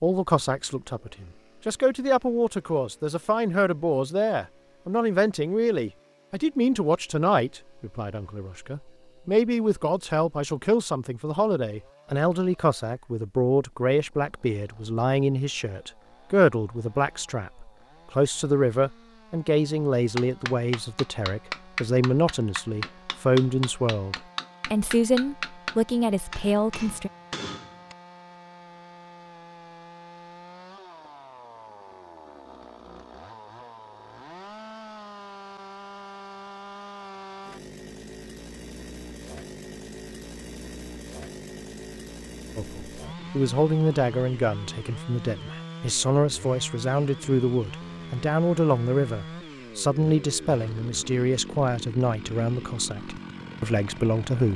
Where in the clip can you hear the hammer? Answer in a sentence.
The hammer can be heard from 20.1 to 27.9 s.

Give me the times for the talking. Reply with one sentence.
You can hear the talking from 0.0 to 27.1 s and from 42.5 to 54.5 s.